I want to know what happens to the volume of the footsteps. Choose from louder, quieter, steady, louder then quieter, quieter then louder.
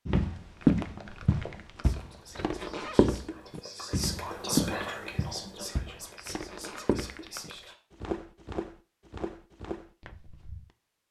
quieter.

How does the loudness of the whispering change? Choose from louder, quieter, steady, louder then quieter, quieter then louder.
louder then quieter.